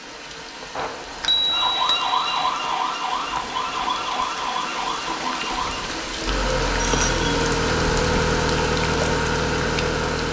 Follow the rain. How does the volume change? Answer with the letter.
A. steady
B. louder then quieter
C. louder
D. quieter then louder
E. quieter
C.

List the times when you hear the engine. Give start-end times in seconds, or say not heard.
6.2-10.2.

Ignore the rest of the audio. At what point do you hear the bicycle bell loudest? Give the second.
1 s.